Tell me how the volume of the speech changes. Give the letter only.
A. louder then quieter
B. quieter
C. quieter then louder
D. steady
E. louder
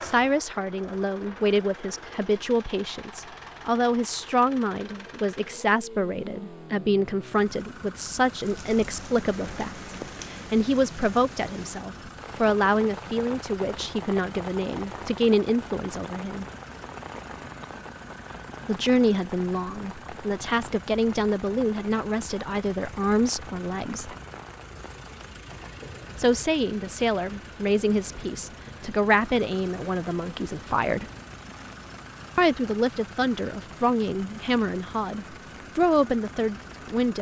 D.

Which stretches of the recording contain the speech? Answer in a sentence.
The speech can be heard from 0.0 to 16.4 s, from 18.6 to 24.1 s, from 26.1 to 31.1 s and from 32.4 to 37.1 s.